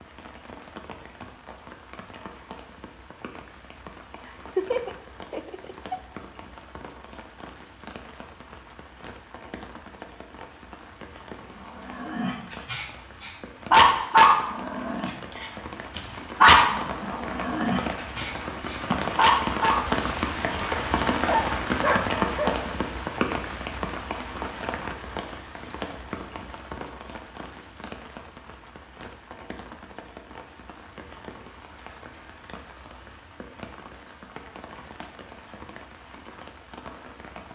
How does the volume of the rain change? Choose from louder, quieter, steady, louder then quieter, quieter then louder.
louder then quieter.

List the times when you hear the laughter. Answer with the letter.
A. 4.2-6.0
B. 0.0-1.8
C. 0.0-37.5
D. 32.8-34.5
A.